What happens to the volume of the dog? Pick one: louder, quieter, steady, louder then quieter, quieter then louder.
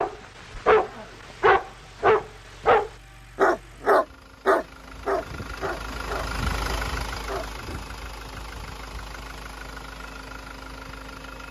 quieter.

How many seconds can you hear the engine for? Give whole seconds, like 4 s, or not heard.
11 s.